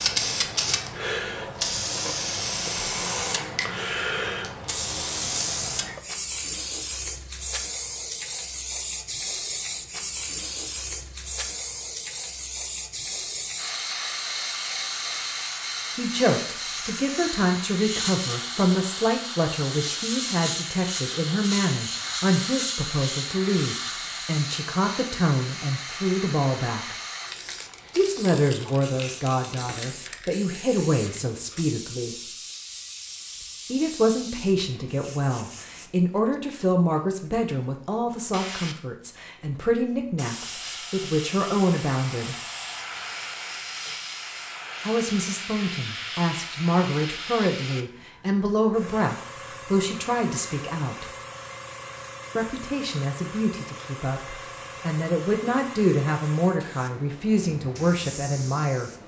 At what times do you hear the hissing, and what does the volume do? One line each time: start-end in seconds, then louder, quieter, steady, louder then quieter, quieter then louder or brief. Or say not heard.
0.0-59.0 quieter.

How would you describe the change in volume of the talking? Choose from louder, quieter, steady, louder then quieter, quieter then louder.
steady.